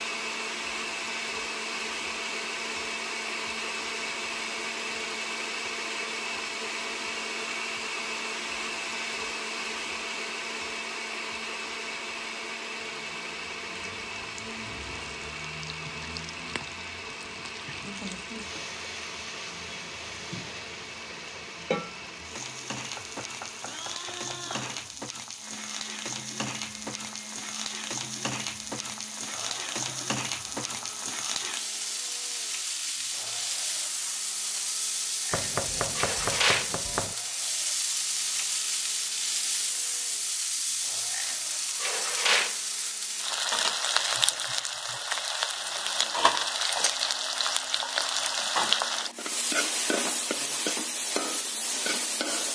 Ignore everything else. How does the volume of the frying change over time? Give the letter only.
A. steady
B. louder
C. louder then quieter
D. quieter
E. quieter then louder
B.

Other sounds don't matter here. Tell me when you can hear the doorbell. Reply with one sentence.
You can't hear the doorbell here.